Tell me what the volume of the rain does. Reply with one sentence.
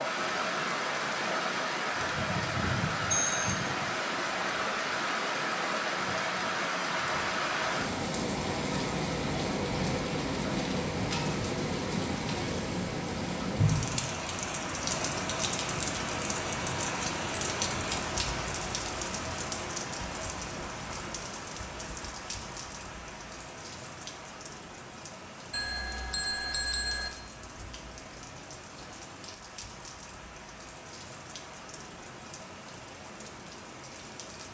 The volume of the rain goes down.